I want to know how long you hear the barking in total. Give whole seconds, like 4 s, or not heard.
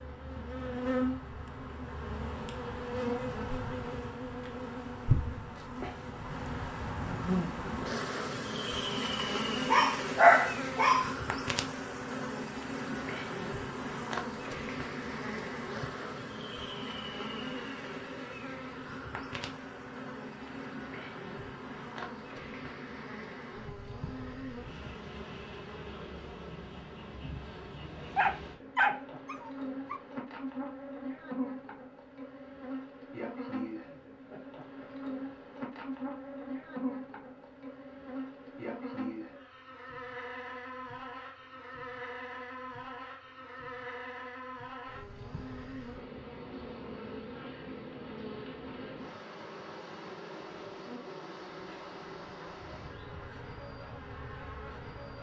4 s.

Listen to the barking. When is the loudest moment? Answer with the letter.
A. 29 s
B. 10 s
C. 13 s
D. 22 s
B.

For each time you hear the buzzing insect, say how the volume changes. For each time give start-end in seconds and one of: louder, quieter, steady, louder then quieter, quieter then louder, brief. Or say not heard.
0.0-55.1 quieter.